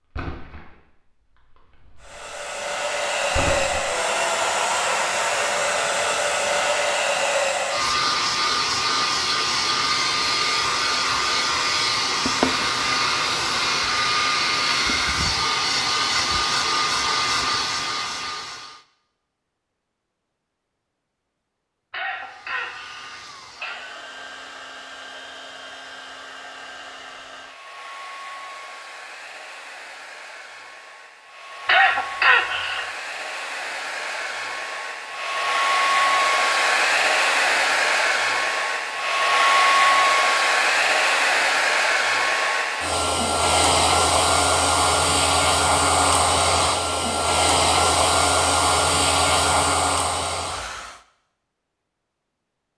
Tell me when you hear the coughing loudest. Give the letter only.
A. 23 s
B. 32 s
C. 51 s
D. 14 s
B.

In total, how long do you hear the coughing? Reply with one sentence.
The coughing can be heard for 3 seconds in total.